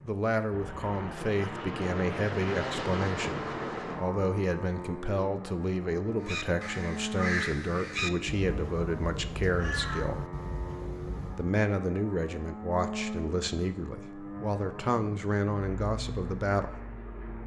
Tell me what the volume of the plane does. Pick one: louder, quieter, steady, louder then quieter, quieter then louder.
quieter.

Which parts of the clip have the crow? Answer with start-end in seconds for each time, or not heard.
6.2-11.5.